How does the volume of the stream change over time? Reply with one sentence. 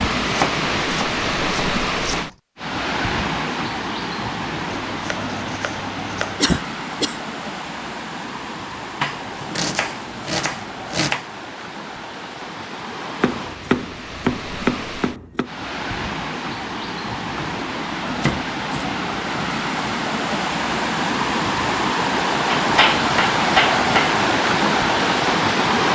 The volume of the stream goes down, then up.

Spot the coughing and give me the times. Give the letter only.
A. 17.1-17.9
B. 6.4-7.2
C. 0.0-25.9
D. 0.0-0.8
B.